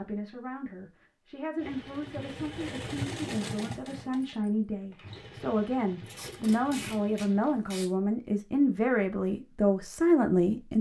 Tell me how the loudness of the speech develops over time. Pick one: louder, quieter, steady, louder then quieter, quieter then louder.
louder.